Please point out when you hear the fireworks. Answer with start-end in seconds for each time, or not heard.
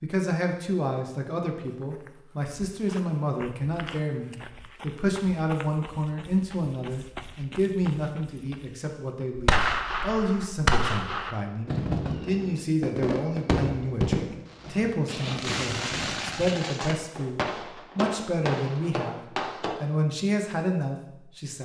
9.3-19.8.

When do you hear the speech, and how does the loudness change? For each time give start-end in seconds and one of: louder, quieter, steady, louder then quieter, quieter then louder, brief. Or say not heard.
0.0-19.2 steady
19.8-21.5 brief.